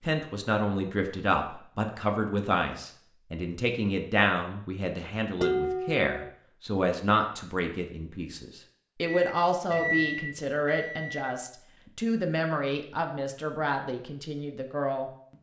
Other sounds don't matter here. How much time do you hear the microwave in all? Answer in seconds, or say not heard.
2 s.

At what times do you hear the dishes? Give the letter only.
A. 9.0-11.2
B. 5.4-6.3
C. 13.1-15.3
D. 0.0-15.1
B.